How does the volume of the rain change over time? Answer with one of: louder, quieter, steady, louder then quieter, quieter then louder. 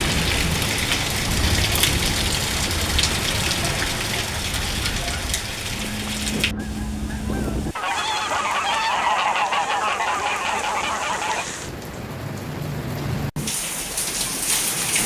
quieter then louder.